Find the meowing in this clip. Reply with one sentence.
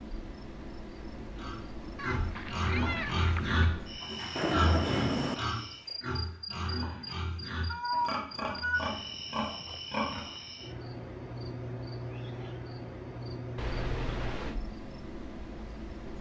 You can hear the meowing from 1.9 to 3.5 s, from 7.7 to 8.8 s and from 13.6 to 14.6 s.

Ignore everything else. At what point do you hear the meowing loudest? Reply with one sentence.
The volume of the meowing peaks at 8 seconds.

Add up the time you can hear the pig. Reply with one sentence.
You can hear the pig for 9 seconds altogether.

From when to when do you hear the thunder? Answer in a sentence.
The thunder can be heard from 4.3 to 5.3 s.